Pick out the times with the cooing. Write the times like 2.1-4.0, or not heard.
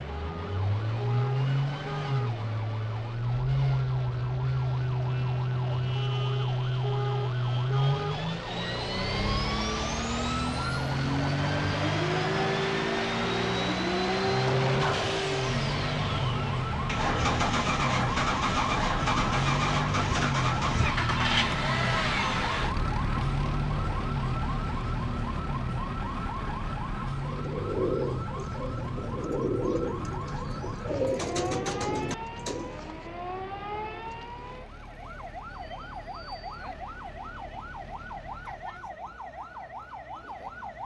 27.2-32.8.